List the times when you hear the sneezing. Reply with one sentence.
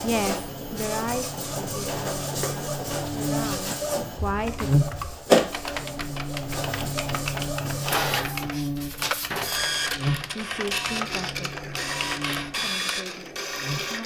You can't hear the sneezing here.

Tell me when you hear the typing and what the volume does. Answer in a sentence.
The typing can be heard from 4.2 to 12.9 s, at a steady volume.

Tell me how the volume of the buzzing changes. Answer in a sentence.
The volume of the buzzing goes up, then down.